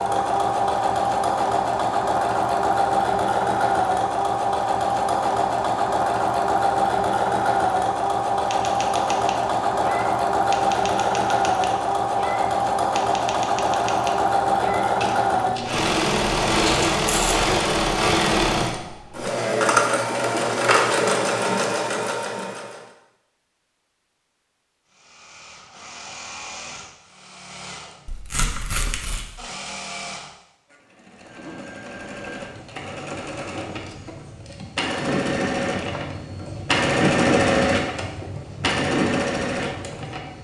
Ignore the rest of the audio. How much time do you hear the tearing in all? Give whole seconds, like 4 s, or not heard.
2 s.